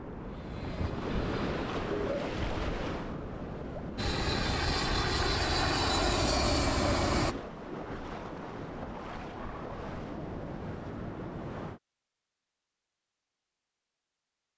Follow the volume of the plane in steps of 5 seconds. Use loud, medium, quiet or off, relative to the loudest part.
medium, loud, off.